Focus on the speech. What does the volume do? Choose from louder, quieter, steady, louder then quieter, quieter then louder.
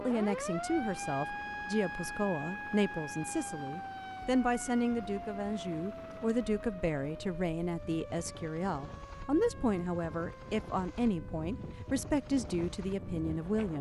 steady.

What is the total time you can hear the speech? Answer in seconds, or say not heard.
14 s.